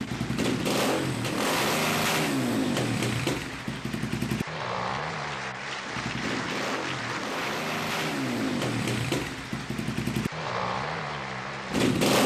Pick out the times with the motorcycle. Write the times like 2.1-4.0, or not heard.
0.0-12.2.